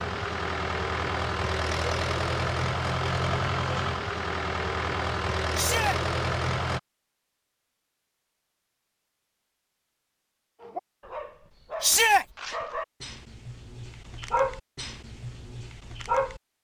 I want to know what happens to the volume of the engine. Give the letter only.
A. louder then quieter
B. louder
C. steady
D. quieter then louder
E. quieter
C.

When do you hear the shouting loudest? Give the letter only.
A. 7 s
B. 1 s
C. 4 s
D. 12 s
D.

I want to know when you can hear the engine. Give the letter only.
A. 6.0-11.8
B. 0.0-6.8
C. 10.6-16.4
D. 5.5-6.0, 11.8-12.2
B.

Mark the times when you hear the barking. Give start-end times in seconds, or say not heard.
10.6-16.4.